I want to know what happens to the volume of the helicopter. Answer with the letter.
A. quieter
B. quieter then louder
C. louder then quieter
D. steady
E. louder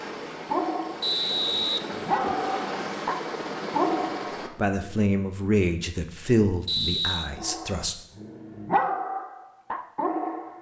E.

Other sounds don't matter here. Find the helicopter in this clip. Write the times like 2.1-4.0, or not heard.
0.0-4.5.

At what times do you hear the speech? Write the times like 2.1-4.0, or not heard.
4.5-8.0.